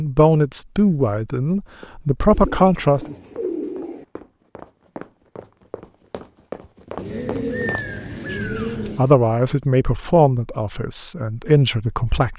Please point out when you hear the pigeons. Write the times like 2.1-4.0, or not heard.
2.2-4.0, 7.0-9.2.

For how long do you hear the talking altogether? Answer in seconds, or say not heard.
7 s.